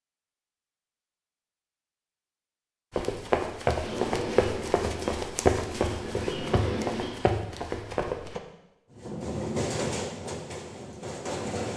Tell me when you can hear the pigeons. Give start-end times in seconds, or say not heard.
not heard.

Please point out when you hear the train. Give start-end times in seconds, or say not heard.
3.6-7.2, 8.9-11.7.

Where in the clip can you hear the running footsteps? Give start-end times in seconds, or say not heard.
2.9-8.4.